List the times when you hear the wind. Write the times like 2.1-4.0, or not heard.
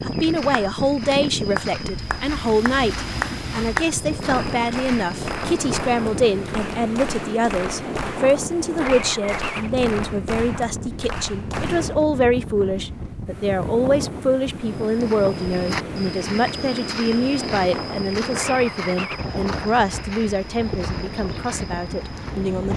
0.0-22.7.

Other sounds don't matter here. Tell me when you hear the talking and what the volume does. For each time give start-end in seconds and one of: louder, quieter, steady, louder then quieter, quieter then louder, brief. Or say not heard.
0.0-22.7 steady.